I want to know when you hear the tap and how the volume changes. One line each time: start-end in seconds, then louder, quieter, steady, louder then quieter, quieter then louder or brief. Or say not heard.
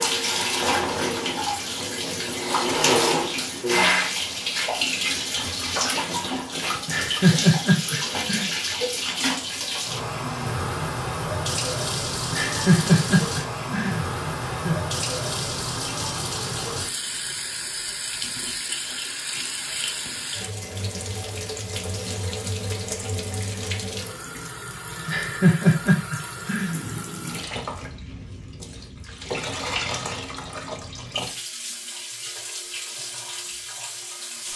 0.0-34.5 quieter.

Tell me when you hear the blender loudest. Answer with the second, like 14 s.
3 s.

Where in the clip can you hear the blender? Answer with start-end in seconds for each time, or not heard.
0.0-4.1.